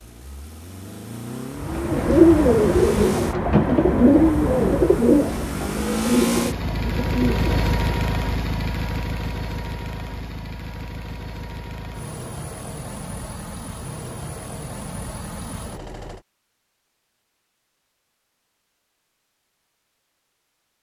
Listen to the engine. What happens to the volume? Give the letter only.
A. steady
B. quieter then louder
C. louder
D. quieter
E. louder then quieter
E.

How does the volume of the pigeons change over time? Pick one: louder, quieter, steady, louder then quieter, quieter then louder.
quieter.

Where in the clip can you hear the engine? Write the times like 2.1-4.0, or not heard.
0.0-16.2.